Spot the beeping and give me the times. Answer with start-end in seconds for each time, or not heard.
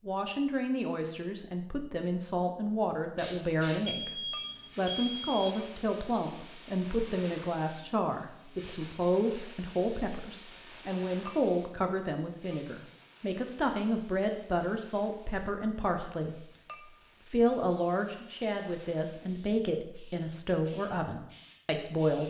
3.9-5.5.